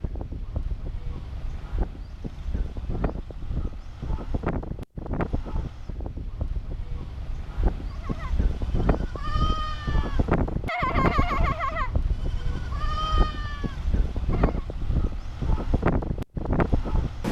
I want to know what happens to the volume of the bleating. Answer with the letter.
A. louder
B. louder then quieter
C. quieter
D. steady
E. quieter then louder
B.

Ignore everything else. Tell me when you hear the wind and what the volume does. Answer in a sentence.
The wind can be heard from 0.0 to 17.2 s, getting louder.